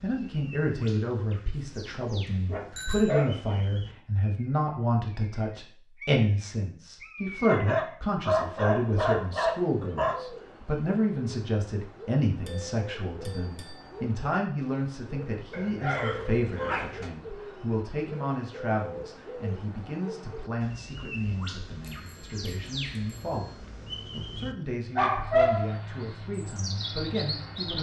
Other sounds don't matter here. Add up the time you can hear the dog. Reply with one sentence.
You can hear the dog for 7 seconds altogether.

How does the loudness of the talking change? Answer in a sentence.
The volume of the talking goes down.